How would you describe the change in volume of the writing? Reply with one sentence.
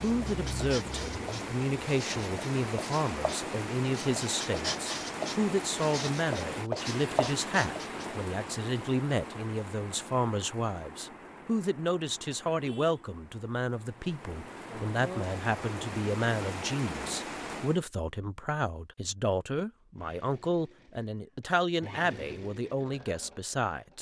The loudness of the writing goes up.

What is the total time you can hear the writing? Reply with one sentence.
The writing can be heard for 8 seconds in total.